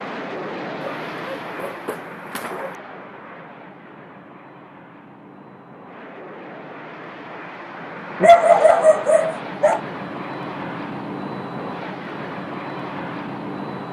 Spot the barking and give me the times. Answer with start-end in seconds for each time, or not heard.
0.8-2.8, 8.2-9.8.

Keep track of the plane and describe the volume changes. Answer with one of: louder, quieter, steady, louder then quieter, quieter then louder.
quieter then louder.